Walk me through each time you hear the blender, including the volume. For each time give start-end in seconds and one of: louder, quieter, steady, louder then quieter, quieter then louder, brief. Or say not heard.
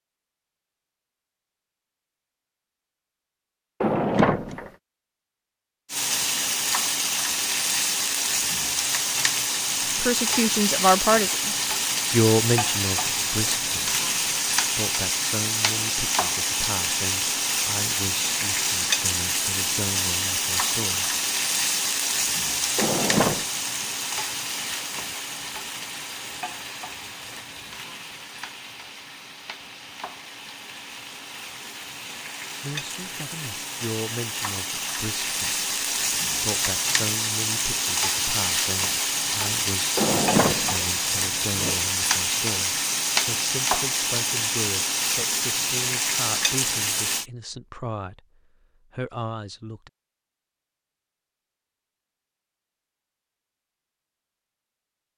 not heard.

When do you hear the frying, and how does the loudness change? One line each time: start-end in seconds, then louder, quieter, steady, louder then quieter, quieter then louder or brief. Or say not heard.
5.9-47.2 quieter then louder.